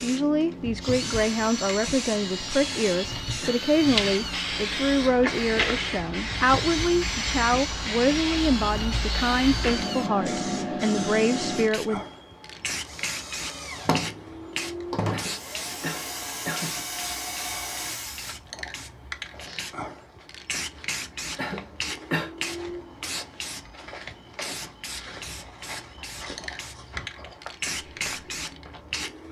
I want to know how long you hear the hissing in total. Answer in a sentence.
The hissing can be heard for 29 seconds in total.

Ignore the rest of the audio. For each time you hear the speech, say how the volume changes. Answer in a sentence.
The speech can be heard from 0.0 to 12.0 s, at a steady volume.